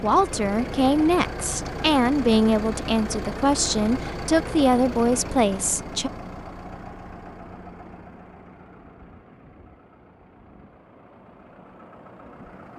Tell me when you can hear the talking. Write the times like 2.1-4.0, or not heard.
0.0-6.1.